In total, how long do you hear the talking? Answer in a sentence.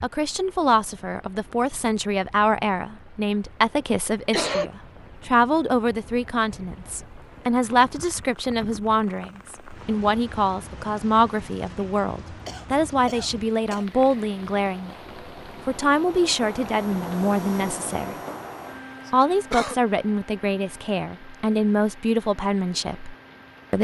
You can hear the talking for 22 seconds altogether.